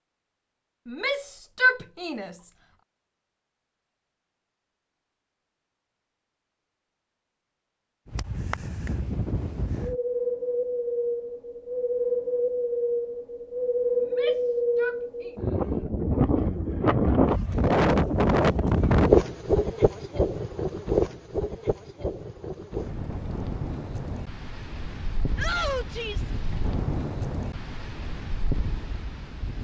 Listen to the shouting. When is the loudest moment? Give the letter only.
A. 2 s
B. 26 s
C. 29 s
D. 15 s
A.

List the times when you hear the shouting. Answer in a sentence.
The shouting can be heard from 0.8 to 2.3 s, from 14.0 to 15.3 s and from 25.4 to 26.3 s.